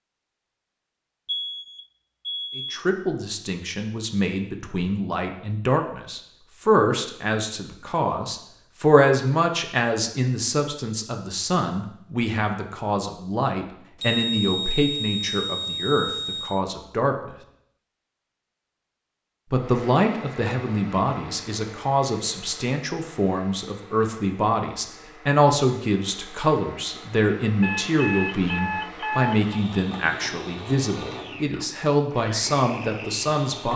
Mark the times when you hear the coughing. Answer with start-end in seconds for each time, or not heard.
not heard.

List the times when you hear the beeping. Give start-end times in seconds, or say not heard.
1.2-2.8, 14.0-16.6, 27.6-29.6.